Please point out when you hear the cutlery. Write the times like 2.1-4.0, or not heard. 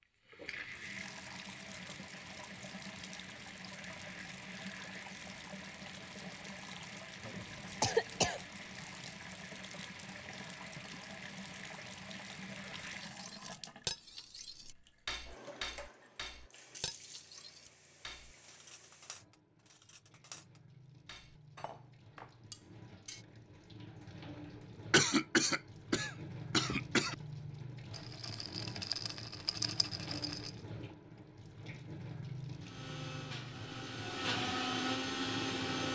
13.0-23.2.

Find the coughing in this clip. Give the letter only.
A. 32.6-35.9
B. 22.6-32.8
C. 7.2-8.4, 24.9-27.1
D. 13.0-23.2
C.